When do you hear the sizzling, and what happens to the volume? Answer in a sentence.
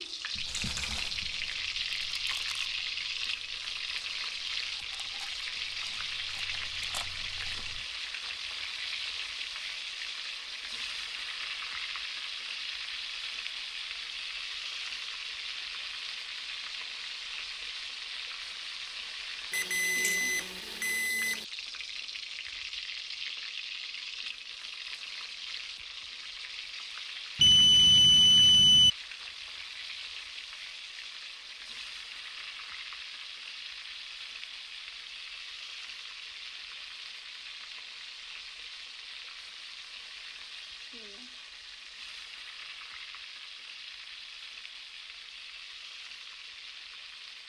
The sizzling can be heard from 0.0 to 47.4 s, getting quieter.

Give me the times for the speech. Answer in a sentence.
The speech can't be heard in this clip.